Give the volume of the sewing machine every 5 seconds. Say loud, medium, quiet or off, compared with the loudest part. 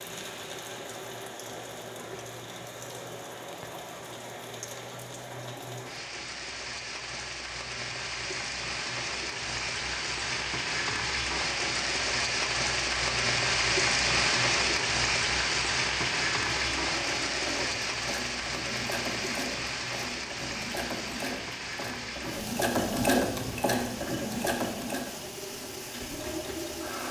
off, off, off, medium, loud, medium.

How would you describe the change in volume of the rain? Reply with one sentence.
The loudness of the rain goes up, then down.